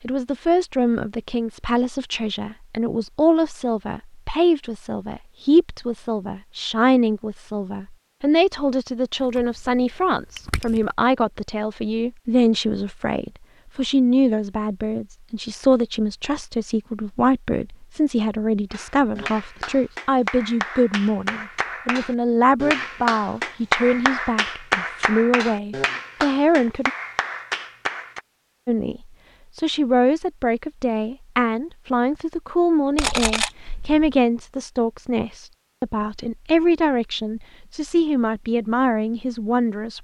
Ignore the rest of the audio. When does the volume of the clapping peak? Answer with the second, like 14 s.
24 s.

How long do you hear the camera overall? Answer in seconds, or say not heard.
3 s.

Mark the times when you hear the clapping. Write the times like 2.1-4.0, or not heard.
18.7-28.2.